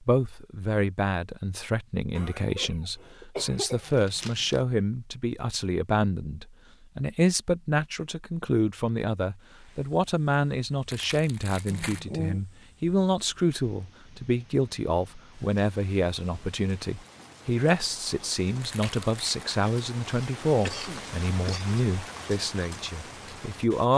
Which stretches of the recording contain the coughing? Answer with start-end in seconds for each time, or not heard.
2.1-3.9, 11.7-12.4, 20.6-21.7.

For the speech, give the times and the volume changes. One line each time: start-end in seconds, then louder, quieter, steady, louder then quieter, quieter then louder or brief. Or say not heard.
0.0-23.9 steady.